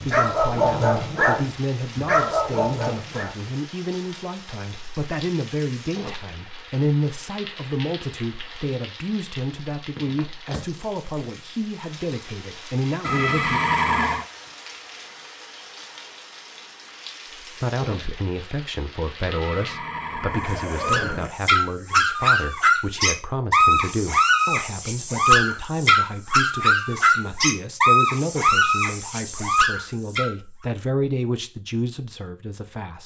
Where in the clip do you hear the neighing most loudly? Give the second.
14 s.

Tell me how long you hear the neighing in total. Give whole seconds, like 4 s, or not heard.
3 s.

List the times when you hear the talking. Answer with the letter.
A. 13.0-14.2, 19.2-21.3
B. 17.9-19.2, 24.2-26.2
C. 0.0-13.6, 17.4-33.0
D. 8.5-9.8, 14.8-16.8
C.